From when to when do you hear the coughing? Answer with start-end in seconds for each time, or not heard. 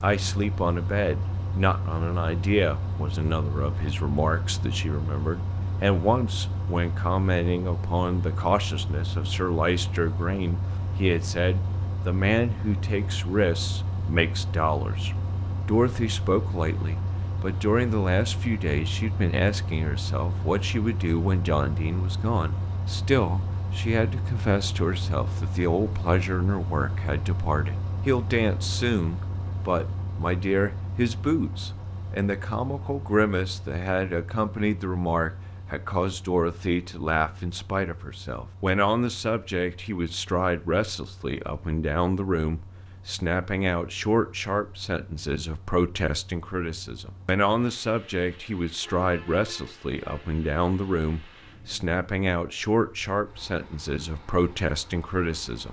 not heard.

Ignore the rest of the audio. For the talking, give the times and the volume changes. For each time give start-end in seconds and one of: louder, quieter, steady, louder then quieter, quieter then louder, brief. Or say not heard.
0.0-55.6 steady.